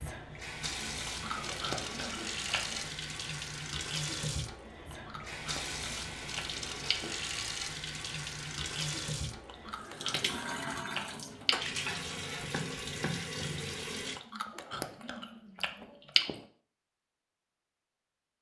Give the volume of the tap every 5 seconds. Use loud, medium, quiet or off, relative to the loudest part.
loud, loud, loud, off.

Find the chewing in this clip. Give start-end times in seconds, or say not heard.
0.8-2.9, 4.7-7.1, 9.3-11.6, 13.9-16.4.